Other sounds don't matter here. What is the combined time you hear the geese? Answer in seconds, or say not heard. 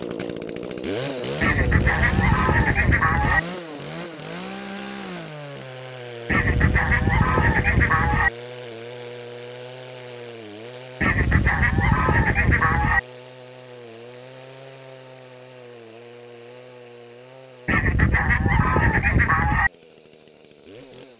8 s.